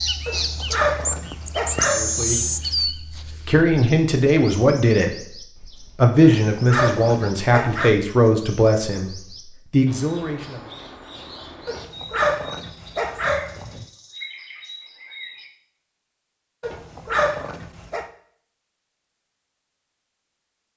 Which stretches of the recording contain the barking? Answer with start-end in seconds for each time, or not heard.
0.2-2.7, 6.2-8.0, 11.7-13.8, 16.6-18.1.